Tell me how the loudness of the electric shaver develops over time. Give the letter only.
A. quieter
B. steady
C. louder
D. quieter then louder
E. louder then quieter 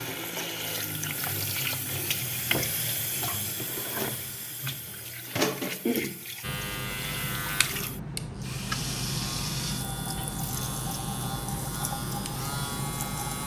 B.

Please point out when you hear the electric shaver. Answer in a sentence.
You can hear the electric shaver from 6.4 to 13.4 s.